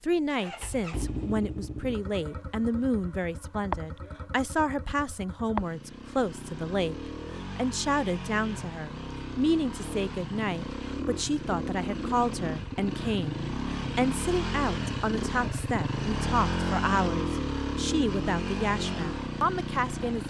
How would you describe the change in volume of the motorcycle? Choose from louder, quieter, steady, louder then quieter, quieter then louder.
louder.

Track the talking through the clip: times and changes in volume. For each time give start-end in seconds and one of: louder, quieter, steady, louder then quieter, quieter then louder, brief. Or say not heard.
0.0-7.0 steady
7.5-20.2 steady.